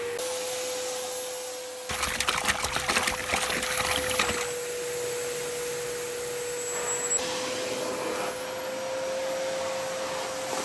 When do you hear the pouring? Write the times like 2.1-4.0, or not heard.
1.9-4.5.